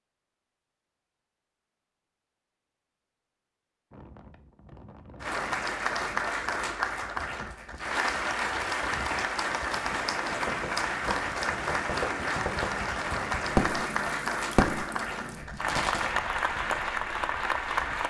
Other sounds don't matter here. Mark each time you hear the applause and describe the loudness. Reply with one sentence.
The applause can be heard from 5.2 to 18.0 s, at a steady volume.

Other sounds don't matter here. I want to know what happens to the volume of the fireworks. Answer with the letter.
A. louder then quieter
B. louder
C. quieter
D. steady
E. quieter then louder
B.